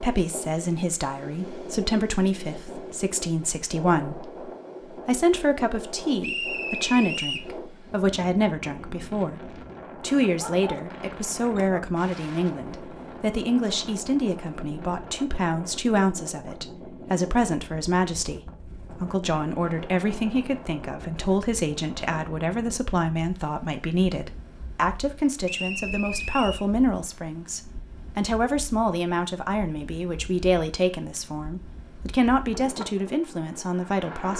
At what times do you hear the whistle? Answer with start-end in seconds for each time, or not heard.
6.2-7.5, 25.4-26.6.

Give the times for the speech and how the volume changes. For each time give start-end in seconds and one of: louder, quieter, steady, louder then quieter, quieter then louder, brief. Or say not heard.
0.0-34.3 steady.